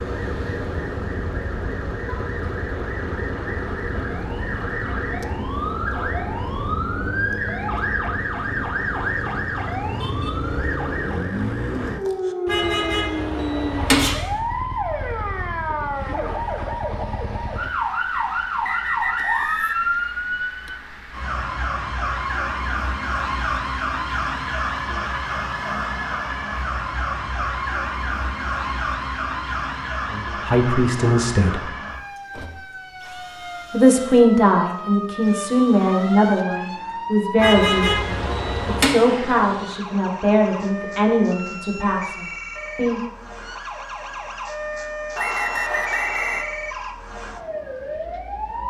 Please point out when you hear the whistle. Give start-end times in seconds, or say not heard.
18.1-19.9, 45.1-46.5.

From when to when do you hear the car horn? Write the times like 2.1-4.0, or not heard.
12.4-14.2, 37.4-38.9.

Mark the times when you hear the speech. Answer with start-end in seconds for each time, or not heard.
30.1-31.6, 33.7-43.0.